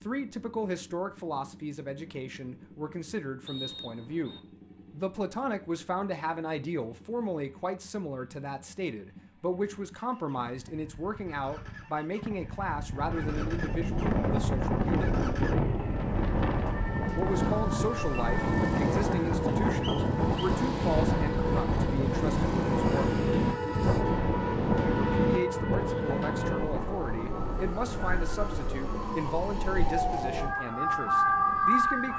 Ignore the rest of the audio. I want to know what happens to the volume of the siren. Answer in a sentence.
The volume of the siren goes up.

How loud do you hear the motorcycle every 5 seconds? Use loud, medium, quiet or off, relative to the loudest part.
quiet, quiet, medium, loud, loud, off, off.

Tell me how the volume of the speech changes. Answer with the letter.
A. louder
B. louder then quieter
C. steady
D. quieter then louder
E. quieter
C.